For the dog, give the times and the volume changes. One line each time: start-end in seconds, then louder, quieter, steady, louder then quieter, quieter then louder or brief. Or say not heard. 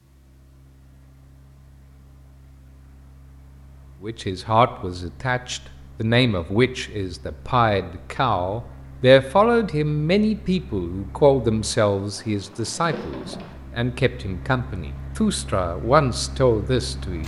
not heard.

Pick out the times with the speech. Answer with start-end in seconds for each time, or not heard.
4.0-17.2.